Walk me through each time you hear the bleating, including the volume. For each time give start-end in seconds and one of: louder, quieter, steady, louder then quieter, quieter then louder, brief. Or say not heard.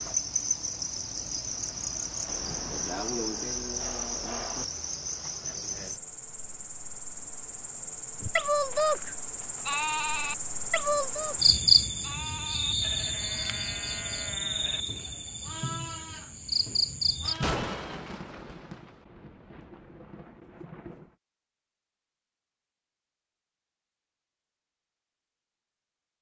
8.2-18.1 quieter.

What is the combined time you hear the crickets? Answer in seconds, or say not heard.
17 s.